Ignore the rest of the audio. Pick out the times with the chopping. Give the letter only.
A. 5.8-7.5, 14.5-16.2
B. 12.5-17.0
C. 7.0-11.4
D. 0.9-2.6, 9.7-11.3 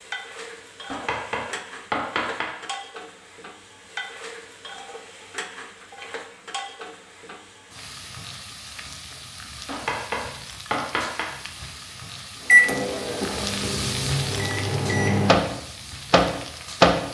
D.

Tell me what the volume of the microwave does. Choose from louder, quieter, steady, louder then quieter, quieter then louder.
louder.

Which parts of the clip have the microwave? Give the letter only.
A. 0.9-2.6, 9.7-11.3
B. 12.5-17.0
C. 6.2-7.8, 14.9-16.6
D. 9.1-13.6
B.